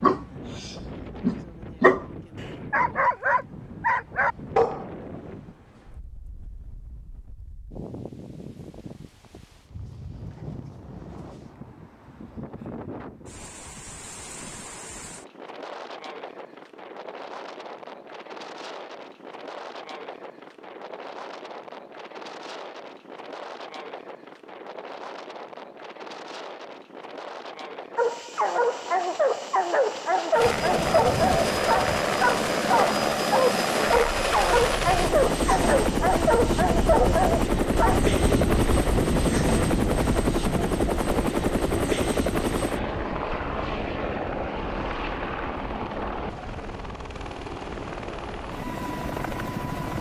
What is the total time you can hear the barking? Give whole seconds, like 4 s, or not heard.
15 s.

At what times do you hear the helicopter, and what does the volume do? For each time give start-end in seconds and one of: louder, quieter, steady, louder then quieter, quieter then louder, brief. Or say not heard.
30.3-49.9 quieter.